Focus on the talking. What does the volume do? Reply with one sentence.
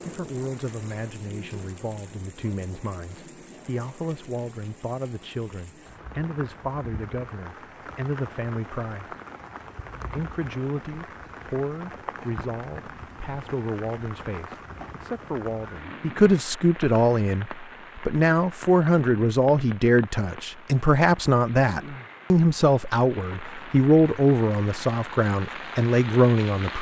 The volume of the talking goes up.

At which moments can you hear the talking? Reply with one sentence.
The talking can be heard from 0.0 to 9.2 s and from 10.1 to 26.7 s.